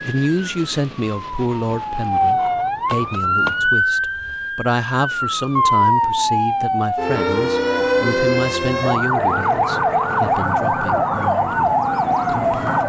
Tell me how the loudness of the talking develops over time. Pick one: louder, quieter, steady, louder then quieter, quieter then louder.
quieter.